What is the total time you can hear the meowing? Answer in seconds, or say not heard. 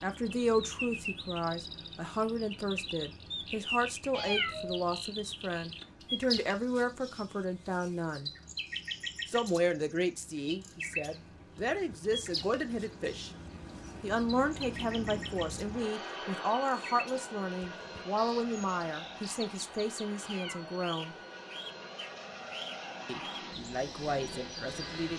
2 s.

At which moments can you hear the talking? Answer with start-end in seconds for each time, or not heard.
0.0-8.3, 9.2-13.3, 14.0-21.1, 23.1-25.1.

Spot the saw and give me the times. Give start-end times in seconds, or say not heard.
not heard.